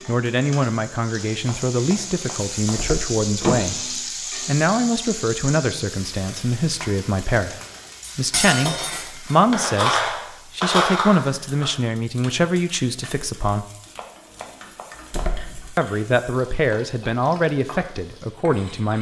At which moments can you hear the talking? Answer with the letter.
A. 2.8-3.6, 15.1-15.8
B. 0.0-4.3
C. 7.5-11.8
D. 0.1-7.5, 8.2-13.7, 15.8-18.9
D.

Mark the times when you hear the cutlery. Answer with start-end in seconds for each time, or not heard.
7.5-11.8.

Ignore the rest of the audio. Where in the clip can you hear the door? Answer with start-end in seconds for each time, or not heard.
2.8-3.6, 15.1-15.8.